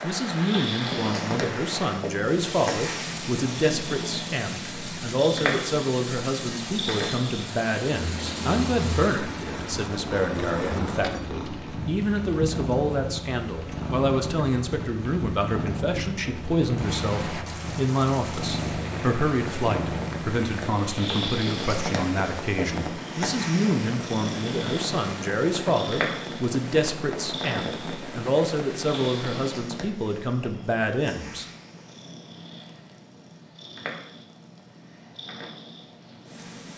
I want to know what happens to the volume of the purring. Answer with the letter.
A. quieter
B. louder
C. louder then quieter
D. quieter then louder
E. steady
A.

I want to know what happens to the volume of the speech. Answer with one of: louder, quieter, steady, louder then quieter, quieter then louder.
steady.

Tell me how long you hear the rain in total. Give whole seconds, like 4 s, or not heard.
30 s.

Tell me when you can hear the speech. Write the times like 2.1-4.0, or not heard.
0.0-31.4.